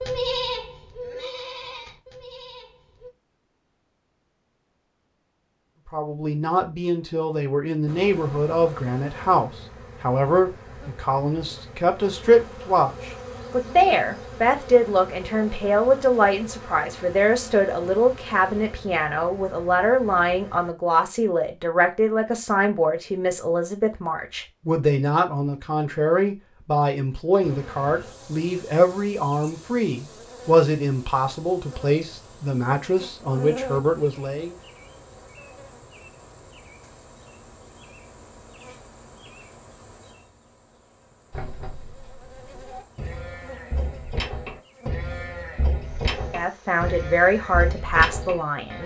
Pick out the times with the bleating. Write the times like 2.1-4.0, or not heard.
0.0-3.1, 41.3-48.8.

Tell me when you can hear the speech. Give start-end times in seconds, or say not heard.
5.9-34.5, 46.1-48.8.